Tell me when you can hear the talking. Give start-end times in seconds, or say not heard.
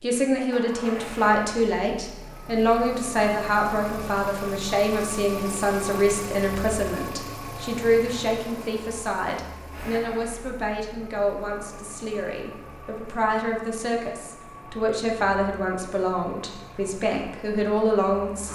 0.0-18.4.